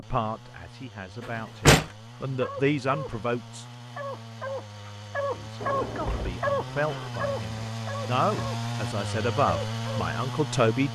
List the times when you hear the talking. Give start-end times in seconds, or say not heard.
0.0-3.6, 5.2-10.9.